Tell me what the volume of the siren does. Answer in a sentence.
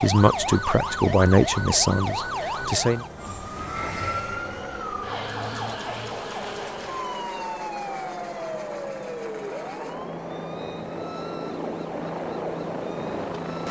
The loudness of the siren goes down.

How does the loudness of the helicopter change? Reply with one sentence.
The volume of the helicopter goes up.